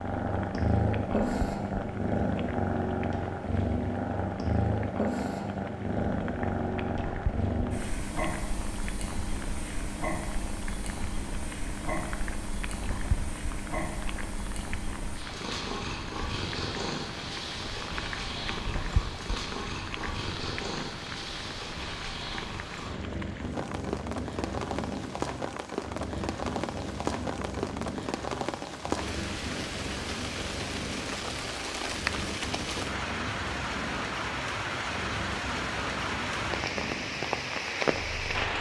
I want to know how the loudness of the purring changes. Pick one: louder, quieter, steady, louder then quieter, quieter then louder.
quieter.